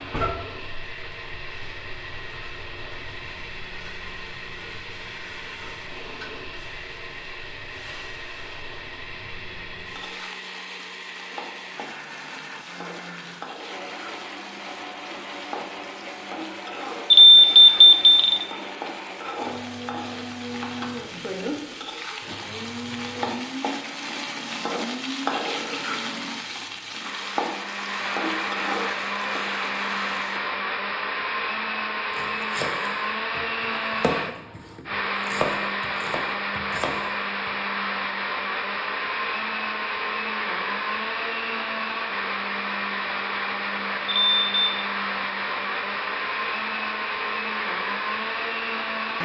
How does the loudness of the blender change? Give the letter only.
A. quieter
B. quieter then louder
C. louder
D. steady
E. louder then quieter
C.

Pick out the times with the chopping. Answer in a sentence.
You can hear the chopping from 32.1 to 37.5 s.